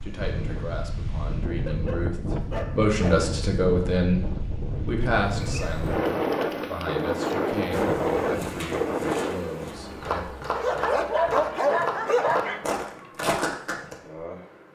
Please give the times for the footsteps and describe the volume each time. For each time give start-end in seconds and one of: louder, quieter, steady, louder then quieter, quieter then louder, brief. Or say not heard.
8.3-13.9 louder.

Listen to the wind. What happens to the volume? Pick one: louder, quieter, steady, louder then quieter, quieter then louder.
louder.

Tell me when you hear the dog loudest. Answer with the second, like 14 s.
12 s.